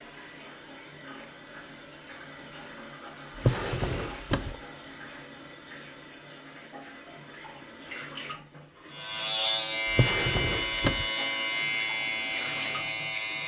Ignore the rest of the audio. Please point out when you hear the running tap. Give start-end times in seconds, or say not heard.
0.0-13.4.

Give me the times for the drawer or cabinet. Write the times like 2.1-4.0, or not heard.
3.4-4.6, 9.9-11.1.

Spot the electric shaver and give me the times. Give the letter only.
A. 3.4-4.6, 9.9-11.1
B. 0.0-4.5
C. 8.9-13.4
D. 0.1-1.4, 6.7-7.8
C.